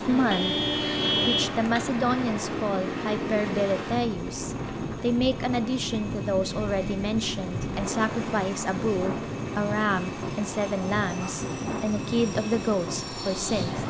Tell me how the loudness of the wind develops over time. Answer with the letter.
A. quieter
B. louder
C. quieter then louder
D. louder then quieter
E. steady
E.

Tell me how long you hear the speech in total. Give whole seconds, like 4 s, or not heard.
13 s.